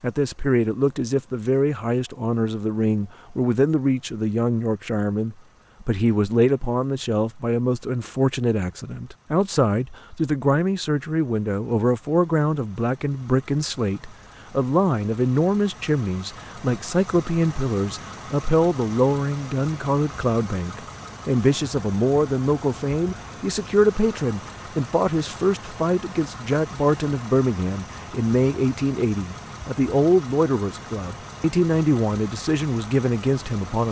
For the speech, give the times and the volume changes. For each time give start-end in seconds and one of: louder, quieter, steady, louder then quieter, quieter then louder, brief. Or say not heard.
0.0-33.8 steady.